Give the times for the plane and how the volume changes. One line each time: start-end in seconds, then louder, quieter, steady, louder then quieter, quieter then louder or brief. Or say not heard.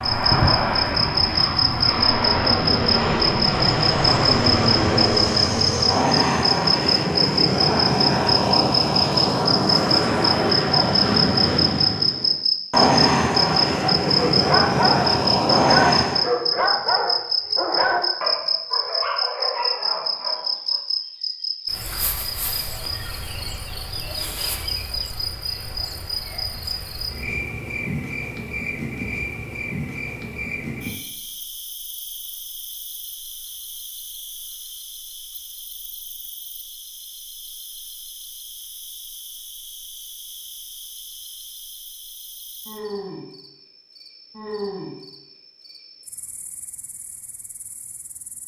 0.0-16.2 steady.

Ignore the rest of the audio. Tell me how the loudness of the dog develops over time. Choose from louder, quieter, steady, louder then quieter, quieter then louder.
quieter.